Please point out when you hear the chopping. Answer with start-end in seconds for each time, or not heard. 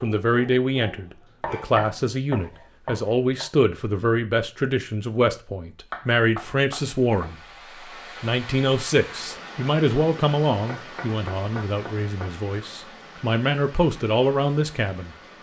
1.4-3.5, 5.9-7.3, 10.6-12.3.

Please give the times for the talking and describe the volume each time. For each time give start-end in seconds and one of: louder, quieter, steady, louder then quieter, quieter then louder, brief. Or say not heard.
0.0-7.4 steady
8.2-15.2 quieter then louder.